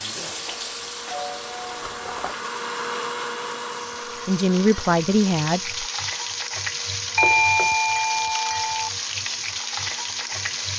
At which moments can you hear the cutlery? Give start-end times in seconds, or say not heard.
1.8-2.4.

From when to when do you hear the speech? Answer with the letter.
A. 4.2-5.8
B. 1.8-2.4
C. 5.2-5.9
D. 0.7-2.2
A.